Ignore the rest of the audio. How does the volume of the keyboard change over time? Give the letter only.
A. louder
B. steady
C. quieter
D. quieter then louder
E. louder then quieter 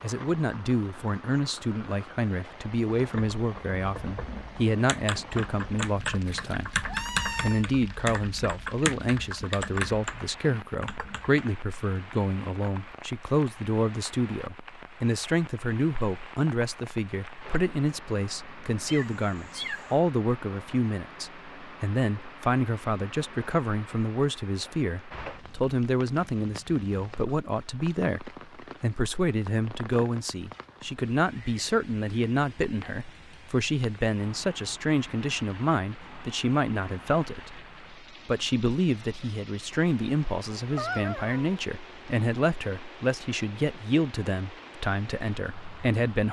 A.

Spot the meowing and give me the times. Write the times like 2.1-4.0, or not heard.
6.0-7.7, 18.9-19.9, 40.5-41.6.